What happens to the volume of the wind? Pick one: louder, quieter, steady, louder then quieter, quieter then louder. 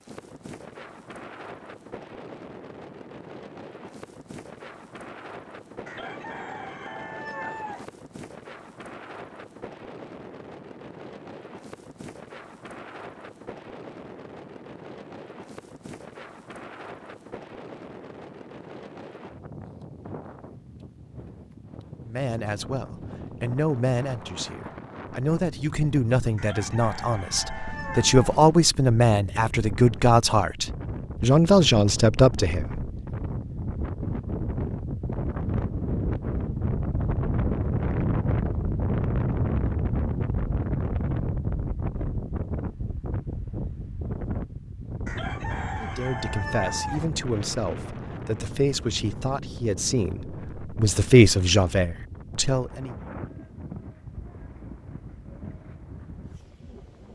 louder then quieter.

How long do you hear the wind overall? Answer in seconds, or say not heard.
57 s.